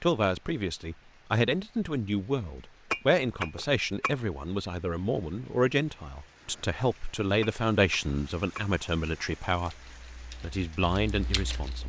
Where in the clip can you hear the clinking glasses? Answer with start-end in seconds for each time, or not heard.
2.9-4.2, 7.4-8.7.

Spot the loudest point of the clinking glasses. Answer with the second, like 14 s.
3 s.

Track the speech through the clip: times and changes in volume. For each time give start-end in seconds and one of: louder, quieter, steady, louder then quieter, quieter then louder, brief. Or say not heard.
0.0-9.8 steady
10.4-11.8 brief.